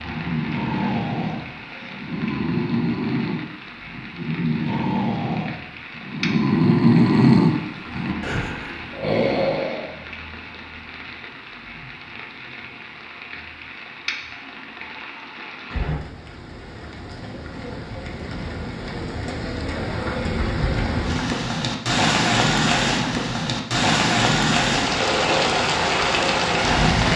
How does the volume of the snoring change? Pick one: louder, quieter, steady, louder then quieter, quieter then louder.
louder then quieter.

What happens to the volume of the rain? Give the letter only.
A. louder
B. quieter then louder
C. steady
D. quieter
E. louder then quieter
A.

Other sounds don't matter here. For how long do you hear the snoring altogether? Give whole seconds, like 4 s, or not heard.
10 s.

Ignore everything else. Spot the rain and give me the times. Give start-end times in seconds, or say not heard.
0.0-27.1.